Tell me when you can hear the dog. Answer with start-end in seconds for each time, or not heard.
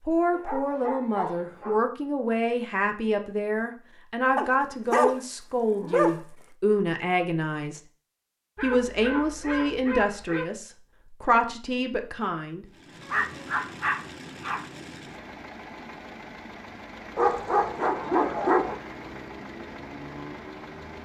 0.3-1.9, 4.3-6.2, 8.6-10.4, 13.0-14.7, 17.1-18.8.